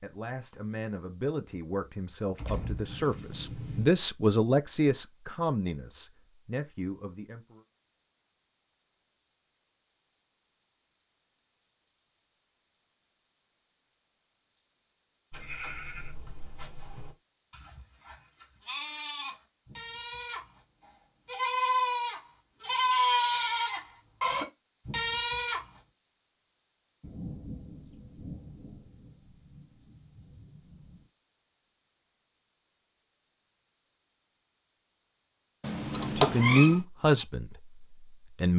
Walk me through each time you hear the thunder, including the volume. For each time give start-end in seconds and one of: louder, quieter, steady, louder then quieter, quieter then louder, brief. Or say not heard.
2.4-3.9 brief
27.0-31.0 quieter.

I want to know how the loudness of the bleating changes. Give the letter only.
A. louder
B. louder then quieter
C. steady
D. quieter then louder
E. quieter
A.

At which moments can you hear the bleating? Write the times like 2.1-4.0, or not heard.
15.3-20.6, 21.2-25.8.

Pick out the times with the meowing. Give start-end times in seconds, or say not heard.
35.6-36.8.